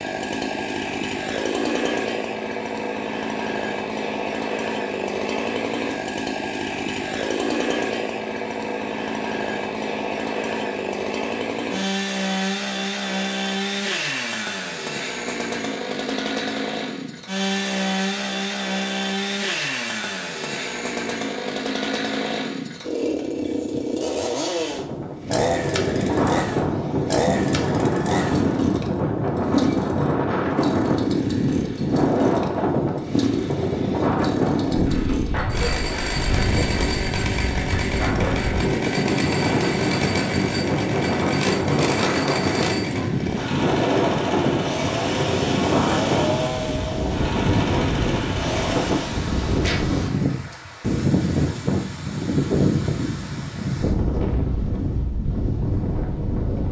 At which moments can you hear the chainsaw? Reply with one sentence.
You can hear the chainsaw from 0.0 to 49.2 s.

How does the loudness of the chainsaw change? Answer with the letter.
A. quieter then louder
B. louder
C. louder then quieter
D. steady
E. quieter
D.